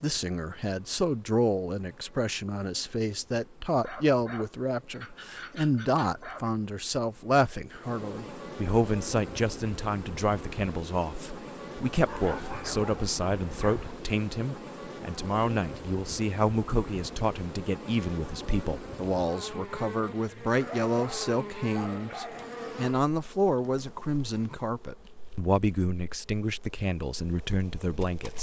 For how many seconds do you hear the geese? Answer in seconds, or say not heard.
not heard.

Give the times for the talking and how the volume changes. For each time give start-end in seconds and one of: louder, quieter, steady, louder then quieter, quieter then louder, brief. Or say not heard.
0.0-28.3 steady.